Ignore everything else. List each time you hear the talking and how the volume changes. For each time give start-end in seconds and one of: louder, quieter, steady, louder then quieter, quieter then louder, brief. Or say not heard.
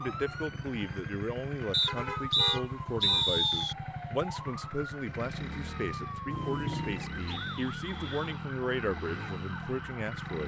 0.0-10.4 steady.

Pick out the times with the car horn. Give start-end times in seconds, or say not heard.
1.9-3.4, 6.3-7.1.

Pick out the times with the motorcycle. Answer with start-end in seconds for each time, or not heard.
0.0-10.4.